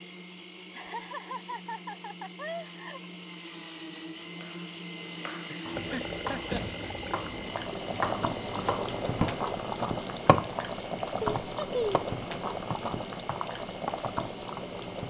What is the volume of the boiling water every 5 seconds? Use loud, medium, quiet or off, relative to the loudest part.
off, loud, loud.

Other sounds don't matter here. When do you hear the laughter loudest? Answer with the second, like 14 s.
12 s.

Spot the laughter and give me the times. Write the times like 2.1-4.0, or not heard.
0.7-3.1, 5.5-6.7, 11.2-12.1.